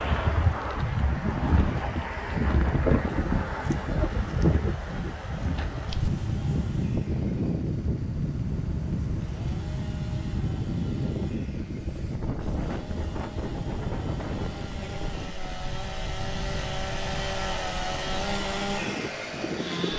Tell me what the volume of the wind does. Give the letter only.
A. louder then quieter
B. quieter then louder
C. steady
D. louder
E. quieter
E.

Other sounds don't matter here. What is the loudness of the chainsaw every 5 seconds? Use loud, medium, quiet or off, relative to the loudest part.
quiet, quiet, quiet, loud.